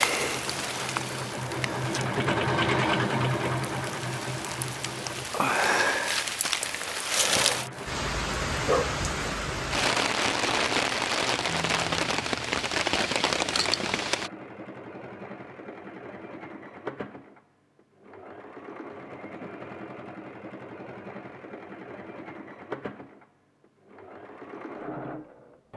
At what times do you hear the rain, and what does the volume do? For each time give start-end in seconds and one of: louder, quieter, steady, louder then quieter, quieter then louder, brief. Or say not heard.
0.0-14.3 louder.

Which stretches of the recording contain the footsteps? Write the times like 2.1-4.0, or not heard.
not heard.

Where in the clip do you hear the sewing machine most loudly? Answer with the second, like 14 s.
3 s.